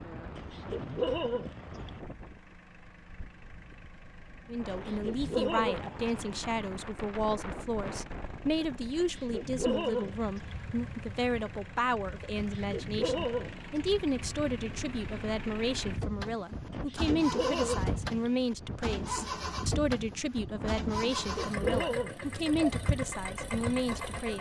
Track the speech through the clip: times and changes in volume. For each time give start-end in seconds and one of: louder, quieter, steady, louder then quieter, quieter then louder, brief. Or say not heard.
4.5-24.3 steady.